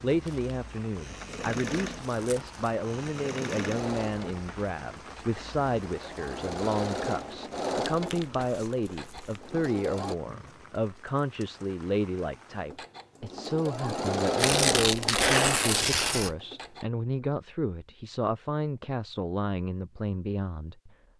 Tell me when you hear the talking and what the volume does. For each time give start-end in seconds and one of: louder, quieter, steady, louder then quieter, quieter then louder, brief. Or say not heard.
0.0-20.9 steady.